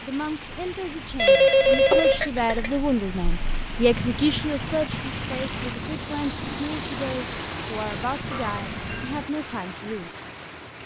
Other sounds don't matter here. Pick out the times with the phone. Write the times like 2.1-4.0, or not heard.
1.1-2.8, 8.3-9.2.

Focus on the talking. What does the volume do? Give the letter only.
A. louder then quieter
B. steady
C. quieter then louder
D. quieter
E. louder
A.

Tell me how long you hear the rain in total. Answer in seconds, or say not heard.
11 s.